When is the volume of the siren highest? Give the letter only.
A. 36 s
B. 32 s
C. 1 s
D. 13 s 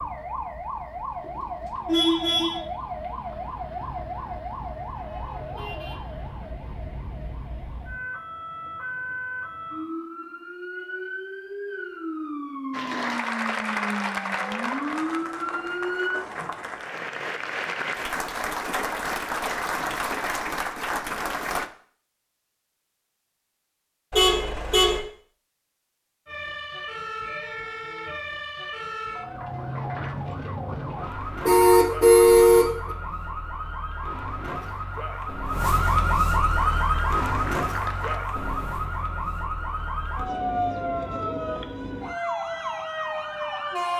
A.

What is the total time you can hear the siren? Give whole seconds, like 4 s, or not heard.
34 s.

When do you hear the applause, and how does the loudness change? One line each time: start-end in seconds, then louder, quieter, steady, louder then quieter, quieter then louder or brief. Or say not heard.
12.7-21.7 quieter then louder
36.8-38.2 brief.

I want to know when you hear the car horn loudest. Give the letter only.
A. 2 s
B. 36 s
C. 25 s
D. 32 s
D.